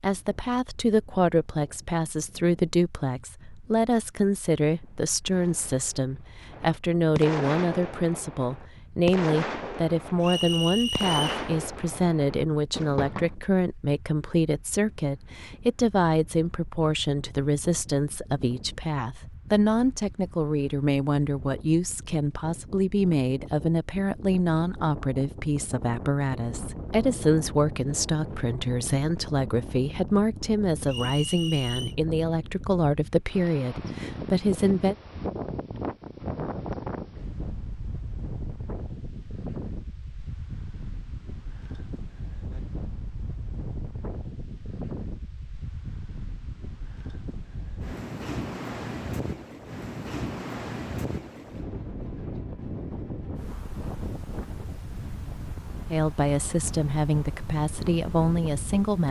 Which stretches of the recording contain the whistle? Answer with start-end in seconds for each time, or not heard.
10.2-11.4, 30.9-31.9.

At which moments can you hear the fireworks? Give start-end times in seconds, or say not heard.
4.8-13.3.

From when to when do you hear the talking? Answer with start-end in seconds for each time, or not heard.
0.0-35.0, 55.9-59.0.